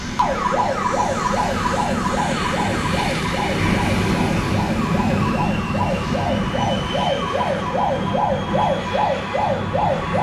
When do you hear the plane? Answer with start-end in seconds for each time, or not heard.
0.0-10.1.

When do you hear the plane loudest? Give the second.
4 s.